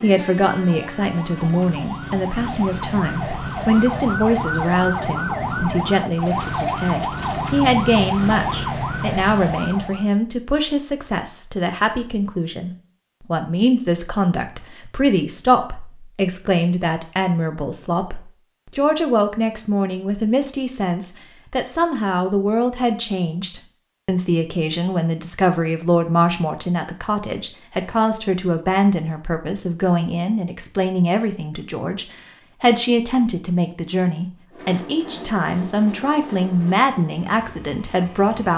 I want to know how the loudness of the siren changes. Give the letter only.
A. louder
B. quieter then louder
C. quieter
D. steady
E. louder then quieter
A.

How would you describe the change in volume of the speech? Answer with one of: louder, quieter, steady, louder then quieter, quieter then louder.
steady.